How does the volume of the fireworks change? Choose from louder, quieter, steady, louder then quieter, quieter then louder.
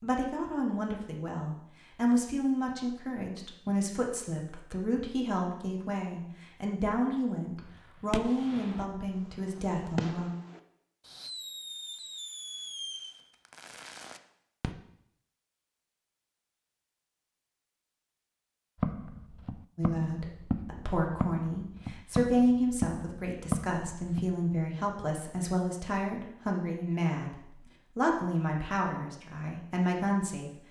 quieter.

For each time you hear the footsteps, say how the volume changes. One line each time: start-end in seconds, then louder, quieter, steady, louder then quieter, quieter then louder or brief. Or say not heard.
18.8-24.4 louder.